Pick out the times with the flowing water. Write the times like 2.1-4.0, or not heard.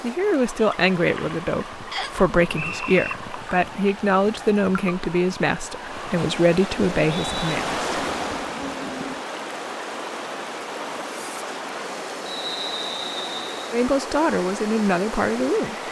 0.0-15.8.